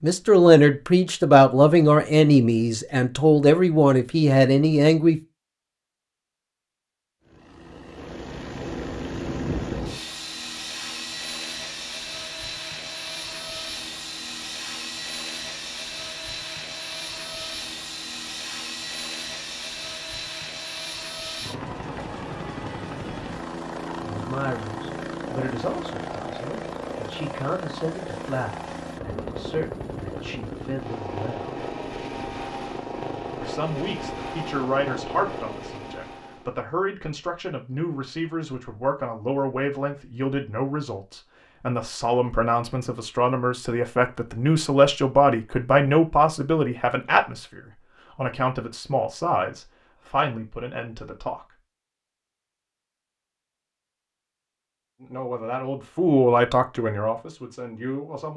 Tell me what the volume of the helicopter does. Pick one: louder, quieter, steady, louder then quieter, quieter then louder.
steady.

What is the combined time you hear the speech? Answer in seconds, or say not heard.
34 s.